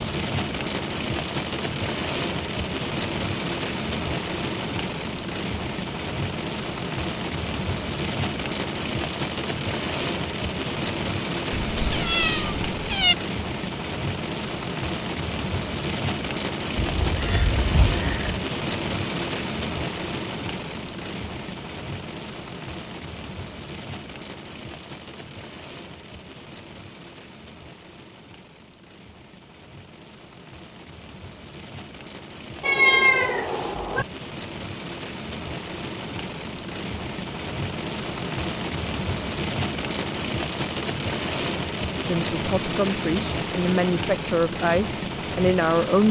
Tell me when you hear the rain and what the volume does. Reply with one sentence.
The rain can be heard from 0.0 to 46.0 s, getting quieter then louder.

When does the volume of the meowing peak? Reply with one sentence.
The loudest moment of the meowing is at 33 seconds.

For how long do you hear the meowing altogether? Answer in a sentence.
You can hear the meowing for 5 seconds altogether.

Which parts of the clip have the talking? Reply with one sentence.
You can hear the talking from 42.0 to 46.0 s.